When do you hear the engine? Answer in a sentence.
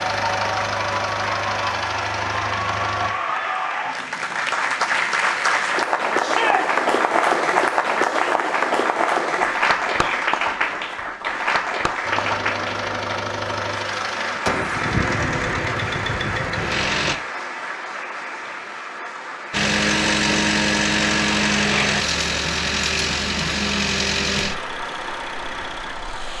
You can hear the engine from 0.0 to 3.1 s, from 12.0 to 17.1 s and from 19.5 to 26.3 s.